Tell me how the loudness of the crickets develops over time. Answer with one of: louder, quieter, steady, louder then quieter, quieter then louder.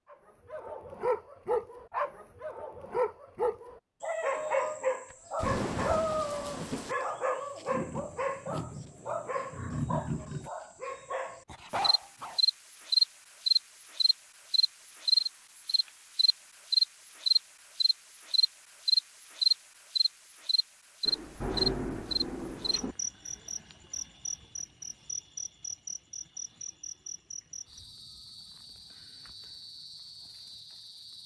quieter.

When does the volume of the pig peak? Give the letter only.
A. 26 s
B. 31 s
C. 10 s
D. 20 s
C.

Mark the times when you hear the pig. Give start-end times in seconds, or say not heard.
7.7-10.5.